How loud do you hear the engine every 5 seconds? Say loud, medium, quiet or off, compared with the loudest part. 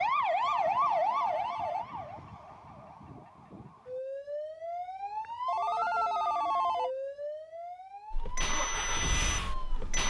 off, loud.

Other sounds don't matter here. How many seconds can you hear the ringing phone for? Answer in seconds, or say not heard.
3 s.